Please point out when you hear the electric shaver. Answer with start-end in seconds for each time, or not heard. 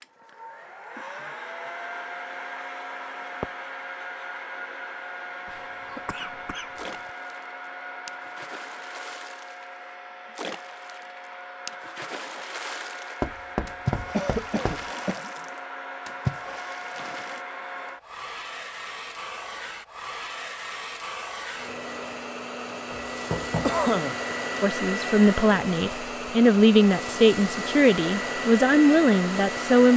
not heard.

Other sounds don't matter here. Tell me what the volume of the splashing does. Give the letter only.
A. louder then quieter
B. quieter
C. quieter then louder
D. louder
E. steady
D.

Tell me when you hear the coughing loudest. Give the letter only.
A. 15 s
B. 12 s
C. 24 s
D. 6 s
C.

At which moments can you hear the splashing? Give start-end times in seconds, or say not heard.
6.5-17.4.